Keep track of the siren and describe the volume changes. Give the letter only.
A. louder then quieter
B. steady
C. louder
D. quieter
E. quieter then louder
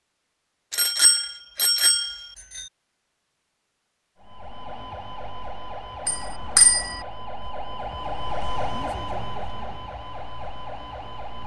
A.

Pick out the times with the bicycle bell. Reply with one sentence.
The bicycle bell can be heard from 0.7 to 2.6 s and from 6.0 to 7.0 s.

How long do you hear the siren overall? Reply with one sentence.
You can hear the siren for 7 seconds altogether.